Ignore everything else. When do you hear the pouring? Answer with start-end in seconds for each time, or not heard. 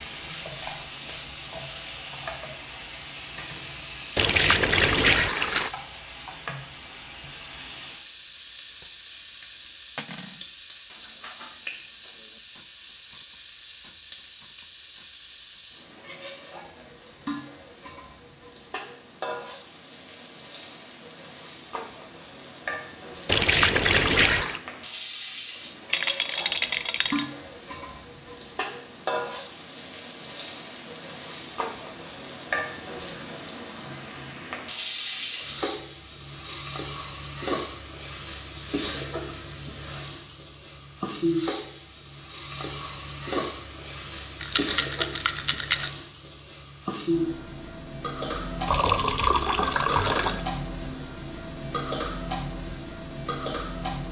4.2-5.7, 23.2-24.6, 48.6-50.5.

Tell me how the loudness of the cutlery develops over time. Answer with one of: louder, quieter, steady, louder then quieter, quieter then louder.
quieter.